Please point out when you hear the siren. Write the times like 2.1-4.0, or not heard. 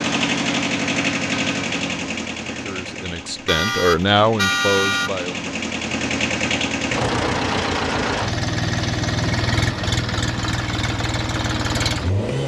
not heard.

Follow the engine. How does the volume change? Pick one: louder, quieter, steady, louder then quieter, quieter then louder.
quieter then louder.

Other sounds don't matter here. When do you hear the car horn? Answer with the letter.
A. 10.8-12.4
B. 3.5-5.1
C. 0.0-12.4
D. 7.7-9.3
B.